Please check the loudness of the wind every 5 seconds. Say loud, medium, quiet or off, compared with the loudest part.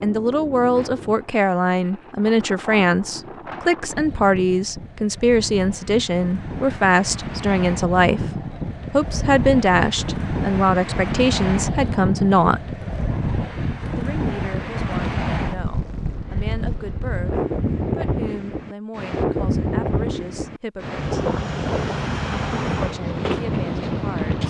medium, medium, loud, loud, loud.